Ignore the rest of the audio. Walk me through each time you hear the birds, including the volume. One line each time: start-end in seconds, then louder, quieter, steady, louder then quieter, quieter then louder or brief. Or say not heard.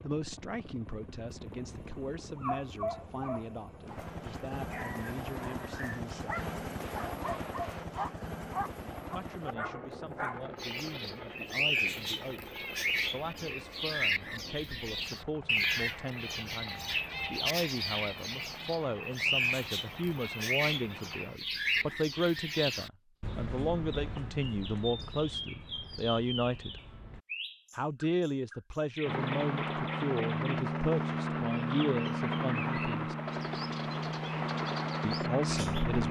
10.6-36.0 quieter.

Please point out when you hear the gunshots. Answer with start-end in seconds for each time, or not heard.
6.3-7.8.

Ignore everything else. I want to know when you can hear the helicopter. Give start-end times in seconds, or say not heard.
0.0-21.4, 29.0-36.0.